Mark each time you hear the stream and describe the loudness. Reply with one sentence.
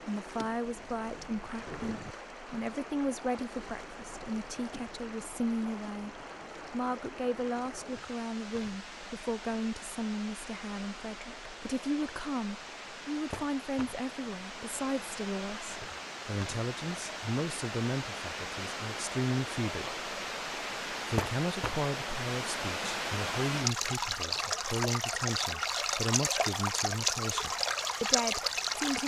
The stream can be heard from 0.0 to 29.0 s, getting louder.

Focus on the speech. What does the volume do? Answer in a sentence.
The loudness of the speech stays about the same.